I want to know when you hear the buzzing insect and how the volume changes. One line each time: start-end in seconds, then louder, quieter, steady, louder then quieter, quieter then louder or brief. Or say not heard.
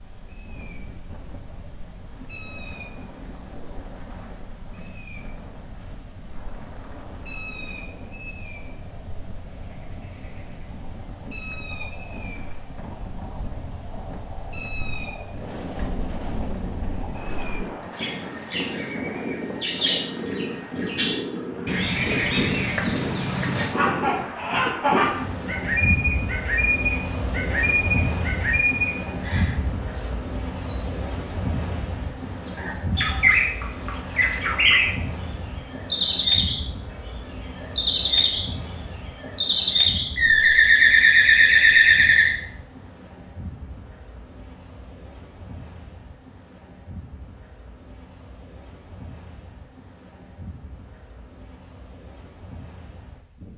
not heard.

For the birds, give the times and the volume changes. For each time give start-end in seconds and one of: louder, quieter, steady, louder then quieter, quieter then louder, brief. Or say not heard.
0.0-42.3 louder.